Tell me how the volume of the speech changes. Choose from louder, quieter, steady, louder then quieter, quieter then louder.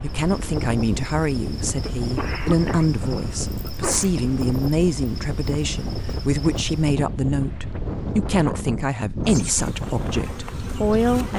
steady.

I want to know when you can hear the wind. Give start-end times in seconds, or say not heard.
0.0-11.3.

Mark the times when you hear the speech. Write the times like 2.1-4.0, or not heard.
0.0-11.3.